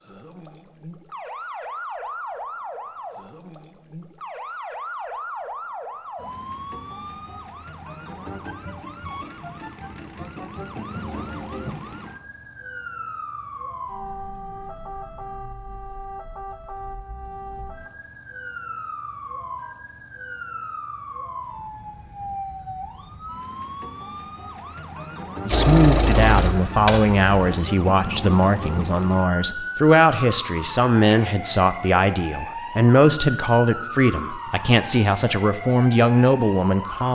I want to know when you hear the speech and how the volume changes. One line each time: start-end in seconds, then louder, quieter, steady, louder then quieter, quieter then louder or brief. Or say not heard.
25.4-37.0 steady.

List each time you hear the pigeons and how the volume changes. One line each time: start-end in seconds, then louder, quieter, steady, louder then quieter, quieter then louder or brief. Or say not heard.
not heard.